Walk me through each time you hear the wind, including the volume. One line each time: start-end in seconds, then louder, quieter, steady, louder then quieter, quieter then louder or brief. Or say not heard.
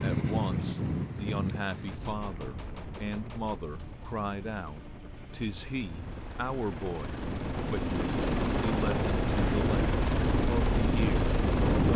0.0-11.9 quieter then louder.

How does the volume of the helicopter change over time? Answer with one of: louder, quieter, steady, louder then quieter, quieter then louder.
louder.